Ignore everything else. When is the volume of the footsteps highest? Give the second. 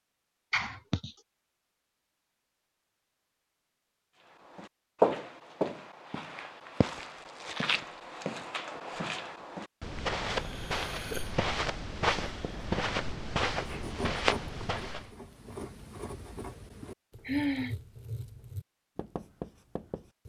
5 s.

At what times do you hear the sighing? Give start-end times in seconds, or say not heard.
0.5-1.1, 10.3-11.3, 16.8-17.8.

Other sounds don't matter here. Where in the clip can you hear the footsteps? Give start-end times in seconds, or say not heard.
4.5-15.1.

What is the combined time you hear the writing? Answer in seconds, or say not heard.
8 s.